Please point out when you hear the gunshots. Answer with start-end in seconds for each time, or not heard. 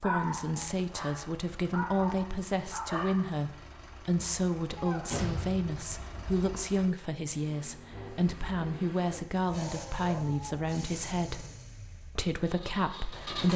4.8-6.6.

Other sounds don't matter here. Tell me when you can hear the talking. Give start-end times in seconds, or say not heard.
0.0-11.4, 12.2-13.5.